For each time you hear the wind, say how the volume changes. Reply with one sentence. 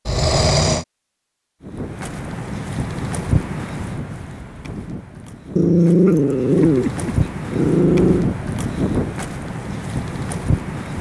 You can hear the wind from 1.6 to 10.9 s, getting quieter then louder.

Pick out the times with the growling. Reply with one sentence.
You can hear the growling from 0.1 to 0.8 s and from 5.5 to 8.2 s.